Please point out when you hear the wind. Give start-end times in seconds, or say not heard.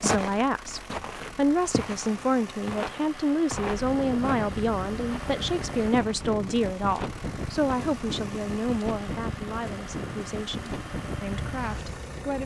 3.5-12.4.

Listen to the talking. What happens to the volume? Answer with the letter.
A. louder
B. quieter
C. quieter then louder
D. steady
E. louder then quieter
B.